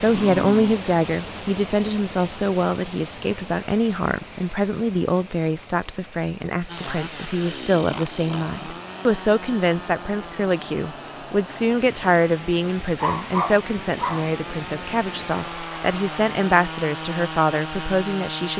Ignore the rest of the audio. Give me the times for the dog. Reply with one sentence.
The dog can be heard from 0.1 to 0.8 s and from 12.9 to 14.3 s.